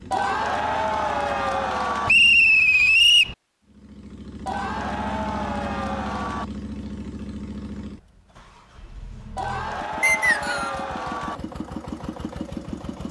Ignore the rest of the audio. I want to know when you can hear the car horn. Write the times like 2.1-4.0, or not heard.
not heard.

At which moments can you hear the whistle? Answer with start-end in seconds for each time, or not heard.
2.0-3.4, 10.0-10.8.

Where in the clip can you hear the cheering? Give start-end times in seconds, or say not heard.
0.1-2.1, 4.5-6.5, 9.3-11.4.